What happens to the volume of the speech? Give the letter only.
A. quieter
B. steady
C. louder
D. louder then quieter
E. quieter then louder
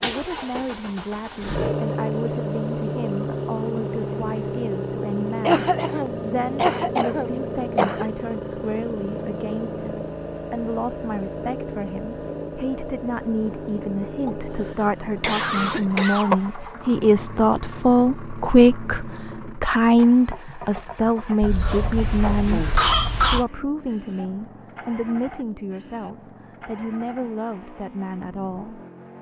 D.